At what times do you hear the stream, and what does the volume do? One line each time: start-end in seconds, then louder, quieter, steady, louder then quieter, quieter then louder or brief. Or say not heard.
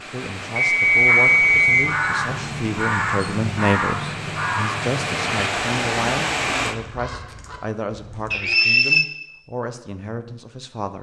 0.0-6.8 louder.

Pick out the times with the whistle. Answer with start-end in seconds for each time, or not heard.
0.6-1.9, 8.3-9.1.